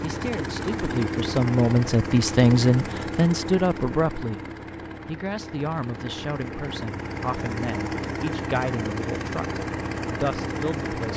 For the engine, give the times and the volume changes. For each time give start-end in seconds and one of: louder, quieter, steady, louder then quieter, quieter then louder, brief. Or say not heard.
0.0-11.1 quieter then louder.